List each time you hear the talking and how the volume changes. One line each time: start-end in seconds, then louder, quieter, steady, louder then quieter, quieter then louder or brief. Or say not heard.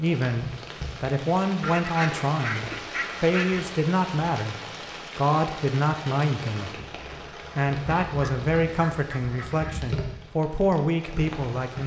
0.0-11.8 steady.